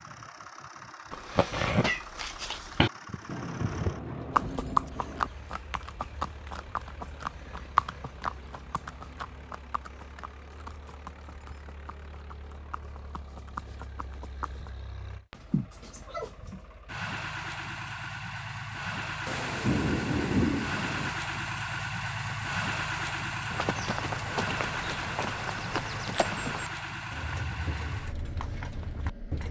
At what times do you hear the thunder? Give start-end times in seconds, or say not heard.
3.2-5.3, 19.2-21.1.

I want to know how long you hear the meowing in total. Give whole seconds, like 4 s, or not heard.
3 s.